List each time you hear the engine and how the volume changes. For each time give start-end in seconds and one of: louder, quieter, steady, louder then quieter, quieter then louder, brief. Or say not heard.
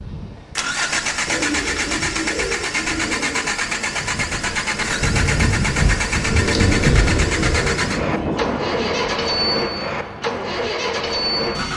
0.1-11.7 steady.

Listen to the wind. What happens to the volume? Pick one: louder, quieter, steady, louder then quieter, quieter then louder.
louder then quieter.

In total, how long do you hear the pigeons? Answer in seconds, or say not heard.
4 s.